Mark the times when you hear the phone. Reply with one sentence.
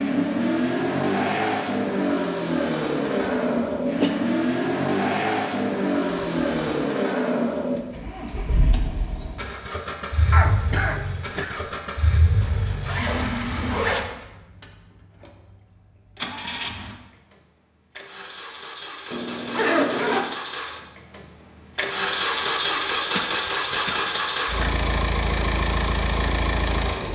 The phone can't be heard in this clip.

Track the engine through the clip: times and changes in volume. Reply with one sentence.
The engine can be heard from 0.0 to 27.1 s, getting quieter then louder.